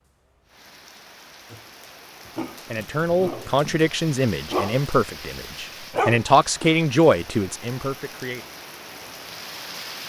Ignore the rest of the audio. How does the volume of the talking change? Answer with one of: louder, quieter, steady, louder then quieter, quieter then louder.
quieter then louder.